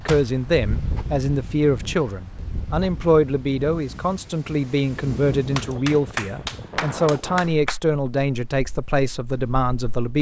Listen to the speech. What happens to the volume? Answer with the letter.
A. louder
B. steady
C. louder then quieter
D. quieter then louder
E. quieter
B.